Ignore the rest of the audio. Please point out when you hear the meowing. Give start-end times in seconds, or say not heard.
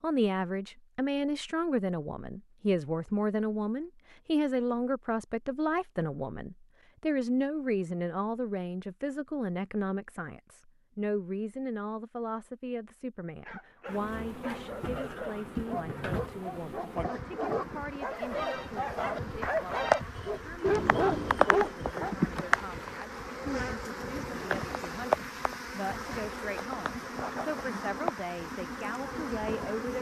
not heard.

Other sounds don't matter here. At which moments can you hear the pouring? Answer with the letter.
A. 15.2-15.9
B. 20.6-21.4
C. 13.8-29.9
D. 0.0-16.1
B.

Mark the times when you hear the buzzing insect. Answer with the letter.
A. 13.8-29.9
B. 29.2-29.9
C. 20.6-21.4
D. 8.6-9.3
A.